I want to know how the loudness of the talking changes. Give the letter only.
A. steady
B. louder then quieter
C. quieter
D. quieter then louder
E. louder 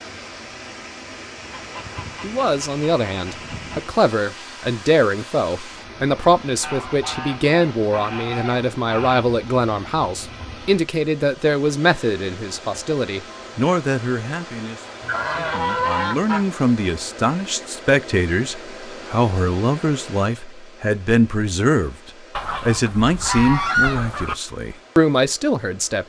A.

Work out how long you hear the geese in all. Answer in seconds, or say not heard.
9 s.